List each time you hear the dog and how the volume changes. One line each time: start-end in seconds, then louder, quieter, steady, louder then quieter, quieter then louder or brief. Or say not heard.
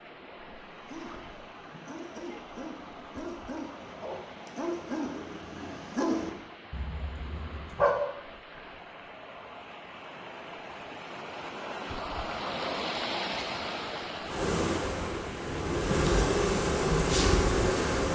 0.6-8.0 louder then quieter.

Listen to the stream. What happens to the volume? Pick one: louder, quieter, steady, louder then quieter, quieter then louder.
louder.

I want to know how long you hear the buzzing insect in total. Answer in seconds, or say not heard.
4 s.